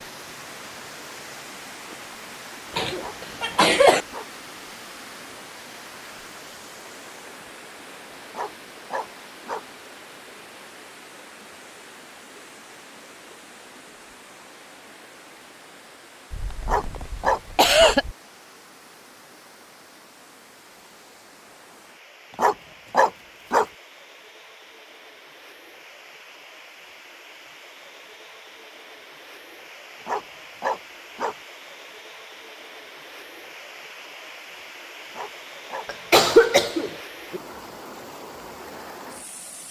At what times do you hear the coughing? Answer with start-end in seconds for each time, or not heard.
2.8-4.0, 16.3-18.1, 35.9-37.4.